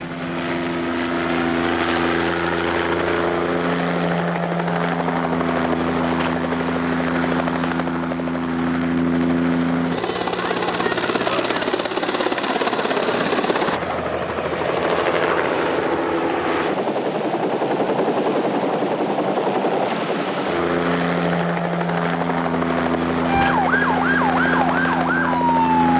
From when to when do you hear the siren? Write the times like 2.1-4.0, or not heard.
23.2-25.9.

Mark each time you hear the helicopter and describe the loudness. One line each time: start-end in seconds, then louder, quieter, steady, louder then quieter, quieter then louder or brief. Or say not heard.
0.0-25.9 steady.